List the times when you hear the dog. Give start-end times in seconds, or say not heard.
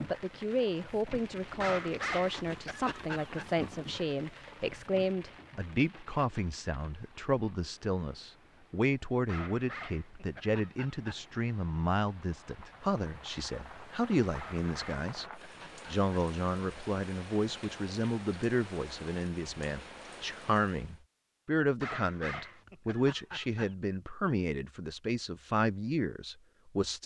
1.6-3.5, 9.2-11.2, 14.3-16.1, 21.8-23.8.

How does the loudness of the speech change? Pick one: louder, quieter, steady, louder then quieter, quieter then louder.
steady.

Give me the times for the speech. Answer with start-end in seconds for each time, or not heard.
0.1-27.0.